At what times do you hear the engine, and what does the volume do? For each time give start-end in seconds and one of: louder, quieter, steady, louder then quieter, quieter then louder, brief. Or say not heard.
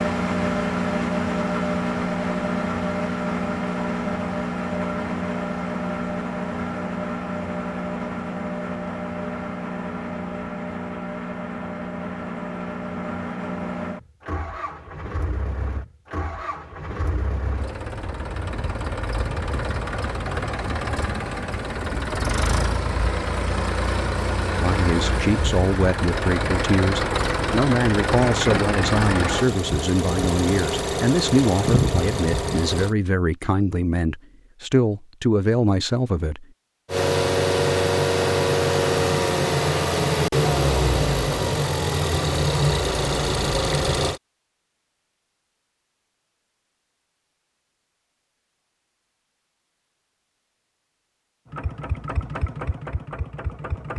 0.0-33.0 quieter then louder
36.9-44.2 steady
51.5-53.9 brief.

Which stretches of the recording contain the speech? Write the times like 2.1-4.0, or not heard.
24.6-36.5.